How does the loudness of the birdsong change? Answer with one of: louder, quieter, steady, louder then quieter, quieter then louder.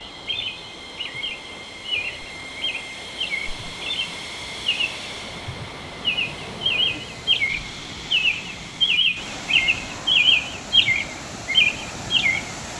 louder.